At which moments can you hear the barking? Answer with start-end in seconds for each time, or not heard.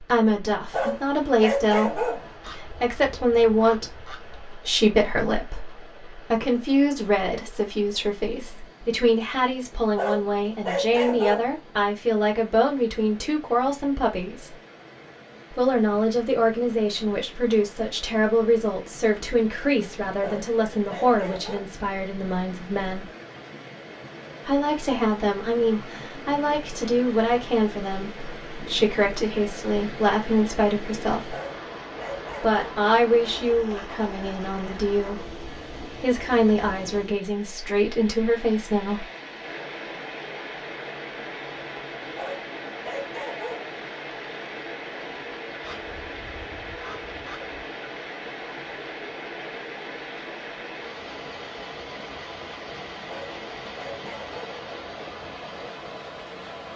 0.7-2.3, 9.9-11.6, 20.2-21.7, 31.3-32.6, 42.1-43.8, 53.0-54.5.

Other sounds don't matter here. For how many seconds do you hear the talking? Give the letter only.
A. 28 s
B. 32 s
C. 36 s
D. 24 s
C.